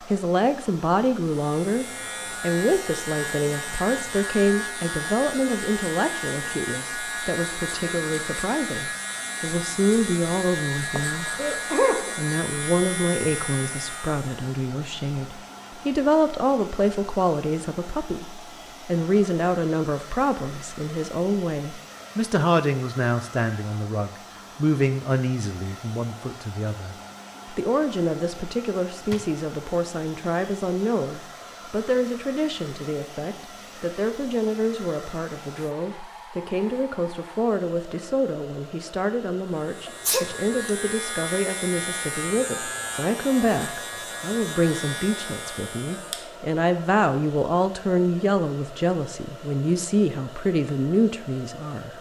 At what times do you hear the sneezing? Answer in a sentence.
You can hear the sneezing from 10.9 to 12.2 s and from 39.9 to 40.3 s.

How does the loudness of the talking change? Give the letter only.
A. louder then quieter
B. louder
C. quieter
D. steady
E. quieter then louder
D.